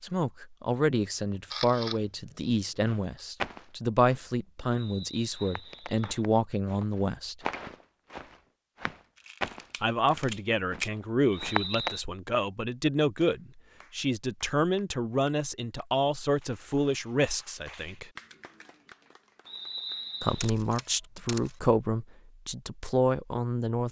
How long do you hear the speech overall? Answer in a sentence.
You can hear the speech for 19 seconds altogether.